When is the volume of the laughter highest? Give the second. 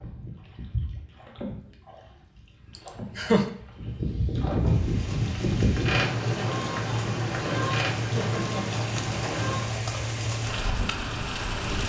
3 s.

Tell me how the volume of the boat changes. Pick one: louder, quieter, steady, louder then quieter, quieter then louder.
louder then quieter.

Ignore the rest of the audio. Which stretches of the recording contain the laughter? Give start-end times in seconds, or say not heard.
2.8-3.5, 8.0-8.8.